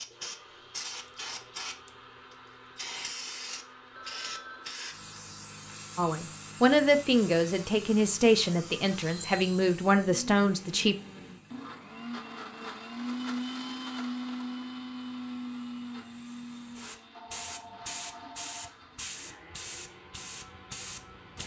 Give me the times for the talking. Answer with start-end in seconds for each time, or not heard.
6.0-10.9.